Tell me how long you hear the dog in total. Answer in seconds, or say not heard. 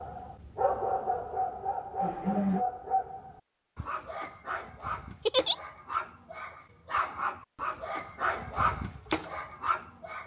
10 s.